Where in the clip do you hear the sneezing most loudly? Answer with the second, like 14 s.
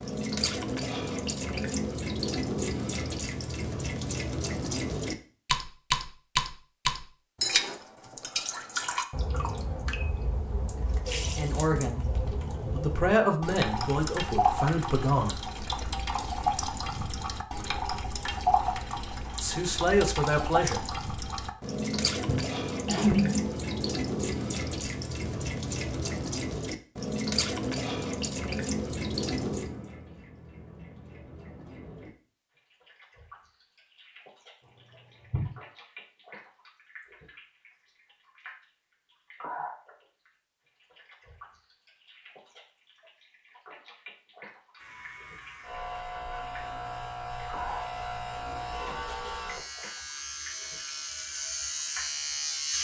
23 s.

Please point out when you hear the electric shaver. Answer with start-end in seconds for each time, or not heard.
44.8-52.7.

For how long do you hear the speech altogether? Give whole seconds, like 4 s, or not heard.
5 s.